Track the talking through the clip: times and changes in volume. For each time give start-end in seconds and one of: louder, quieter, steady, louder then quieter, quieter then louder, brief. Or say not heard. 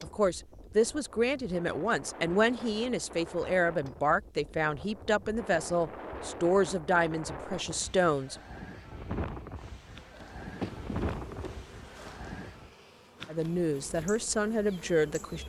0.0-8.3 steady
13.2-15.4 brief.